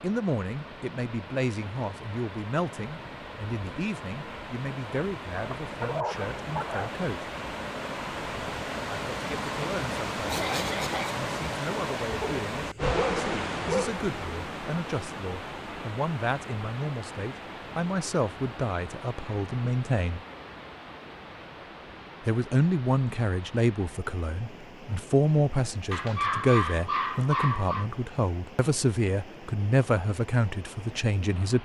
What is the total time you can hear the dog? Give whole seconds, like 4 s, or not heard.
5 s.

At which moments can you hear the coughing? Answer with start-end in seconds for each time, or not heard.
10.2-11.2.